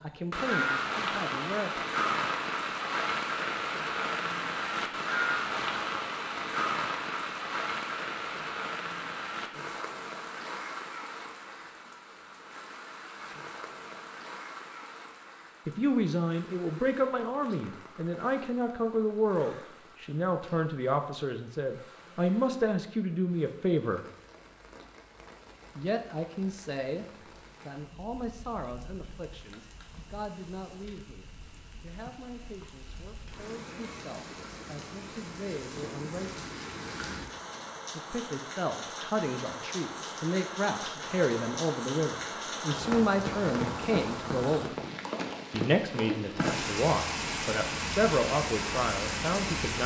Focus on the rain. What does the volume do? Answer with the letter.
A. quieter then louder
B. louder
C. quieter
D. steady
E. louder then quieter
A.